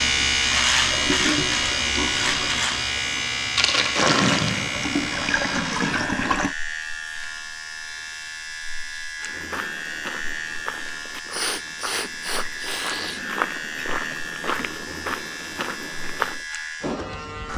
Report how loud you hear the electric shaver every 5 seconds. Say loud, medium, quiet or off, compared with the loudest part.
loud, medium, medium, medium.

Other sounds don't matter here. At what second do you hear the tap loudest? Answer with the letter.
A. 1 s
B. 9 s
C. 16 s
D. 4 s
D.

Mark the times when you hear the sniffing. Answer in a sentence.
You can hear the sniffing from 11.3 to 13.3 s.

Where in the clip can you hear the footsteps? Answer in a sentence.
You can hear the footsteps from 9.2 to 16.4 s.